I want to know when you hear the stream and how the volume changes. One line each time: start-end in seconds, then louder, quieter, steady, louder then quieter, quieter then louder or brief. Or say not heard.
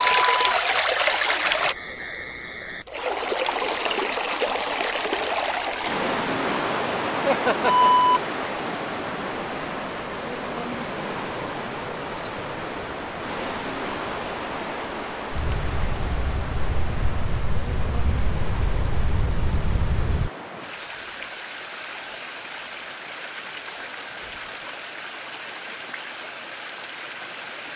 0.0-27.7 quieter.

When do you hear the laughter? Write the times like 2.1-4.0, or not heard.
7.2-7.9.